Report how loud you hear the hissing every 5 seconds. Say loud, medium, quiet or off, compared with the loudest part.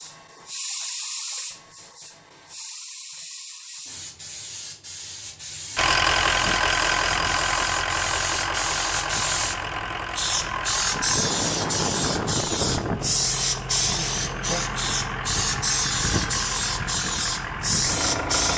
medium, medium, loud, loud.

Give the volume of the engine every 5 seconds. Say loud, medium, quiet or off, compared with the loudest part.
off, loud, medium, medium.